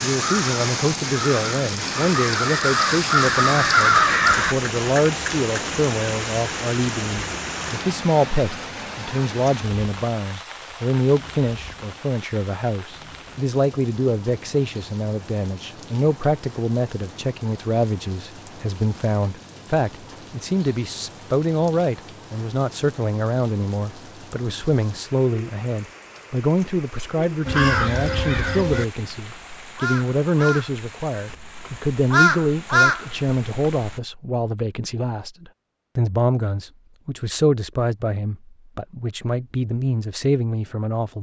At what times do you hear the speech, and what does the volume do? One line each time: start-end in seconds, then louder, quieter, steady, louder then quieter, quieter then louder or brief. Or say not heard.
0.0-41.1 steady.